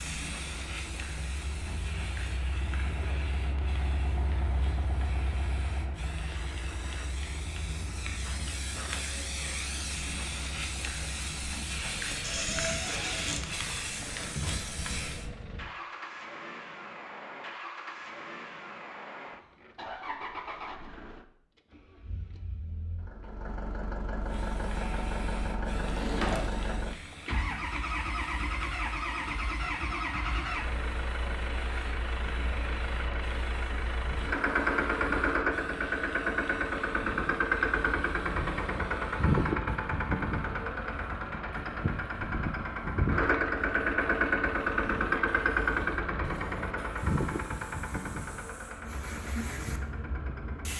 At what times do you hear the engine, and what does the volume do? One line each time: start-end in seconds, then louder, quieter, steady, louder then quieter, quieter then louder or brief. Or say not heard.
0.1-50.7 louder.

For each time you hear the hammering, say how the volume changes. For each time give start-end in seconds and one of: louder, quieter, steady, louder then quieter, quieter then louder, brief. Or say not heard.
not heard.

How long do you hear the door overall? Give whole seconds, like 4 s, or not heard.
2 s.